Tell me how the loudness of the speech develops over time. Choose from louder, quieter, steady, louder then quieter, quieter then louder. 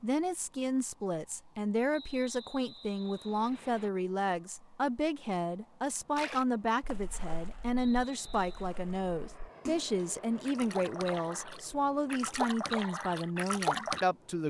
steady.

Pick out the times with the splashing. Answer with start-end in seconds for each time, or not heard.
6.2-14.1.